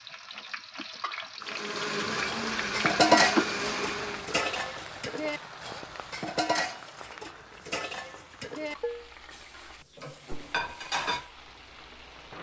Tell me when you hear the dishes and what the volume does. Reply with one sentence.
The dishes can be heard from 2.2 to 11.3 s, getting quieter.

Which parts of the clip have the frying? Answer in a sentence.
You can hear the frying from 0.0 to 12.3 s.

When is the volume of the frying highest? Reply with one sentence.
The volume of the frying peaks at 3 seconds.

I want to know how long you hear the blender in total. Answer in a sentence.
The blender can be heard for 3 seconds in total.